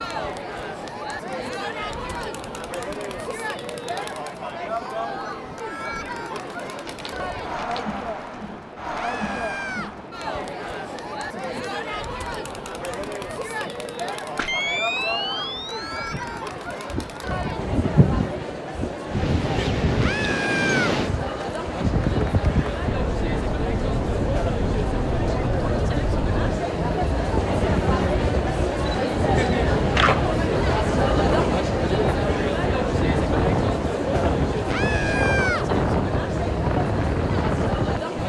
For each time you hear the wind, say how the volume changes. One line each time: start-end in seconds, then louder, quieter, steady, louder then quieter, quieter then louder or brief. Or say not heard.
0.0-38.2 louder.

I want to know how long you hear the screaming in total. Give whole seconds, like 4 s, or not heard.
3 s.